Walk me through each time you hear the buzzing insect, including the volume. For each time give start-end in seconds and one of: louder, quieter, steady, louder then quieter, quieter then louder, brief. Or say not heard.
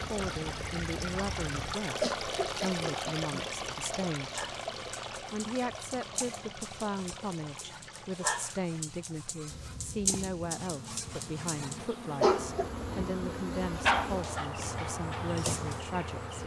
0.0-1.8 brief
9.5-16.4 louder.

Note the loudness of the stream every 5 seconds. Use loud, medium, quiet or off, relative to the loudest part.
loud, medium, off, off.